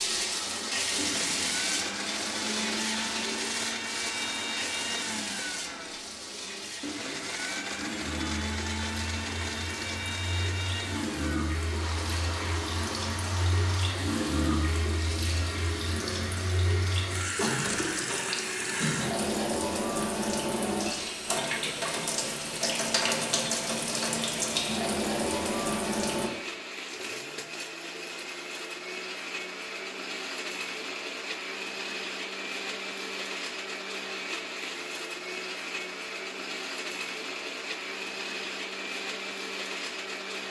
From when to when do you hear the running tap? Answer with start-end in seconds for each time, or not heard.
0.0-26.3.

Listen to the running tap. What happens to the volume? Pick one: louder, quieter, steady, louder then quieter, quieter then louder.
quieter then louder.